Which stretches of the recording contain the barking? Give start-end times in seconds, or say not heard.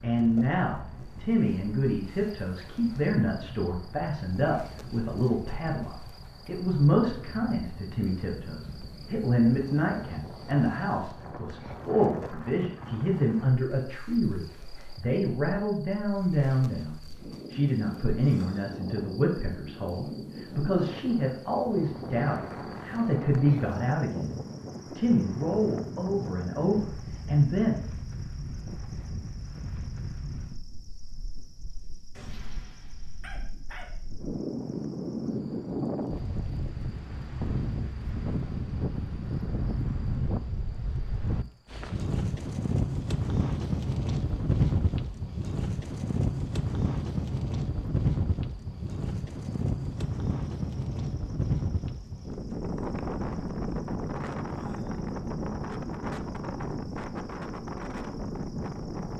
32.1-33.9.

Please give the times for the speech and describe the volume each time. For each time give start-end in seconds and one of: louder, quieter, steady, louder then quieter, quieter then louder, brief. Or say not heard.
0.0-27.8 steady.